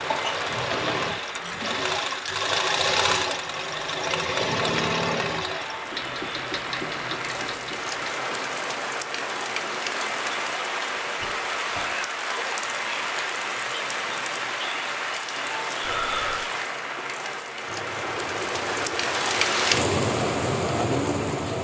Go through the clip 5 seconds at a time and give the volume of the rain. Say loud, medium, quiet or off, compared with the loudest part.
medium, medium, loud, loud, loud.